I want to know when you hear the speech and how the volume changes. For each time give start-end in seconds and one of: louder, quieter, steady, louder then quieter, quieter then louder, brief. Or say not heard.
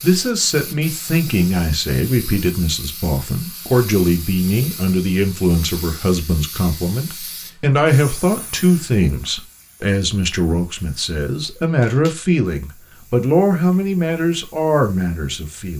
0.0-15.7 steady.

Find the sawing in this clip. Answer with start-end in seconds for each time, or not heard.
not heard.